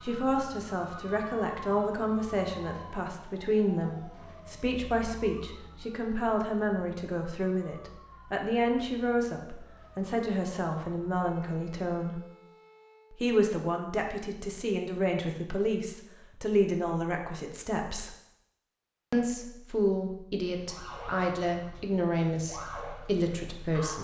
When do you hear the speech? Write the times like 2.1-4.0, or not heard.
0.0-12.2, 13.1-18.1, 19.1-23.9.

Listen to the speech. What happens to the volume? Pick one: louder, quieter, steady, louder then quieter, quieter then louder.
steady.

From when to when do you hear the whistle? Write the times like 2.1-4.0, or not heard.
not heard.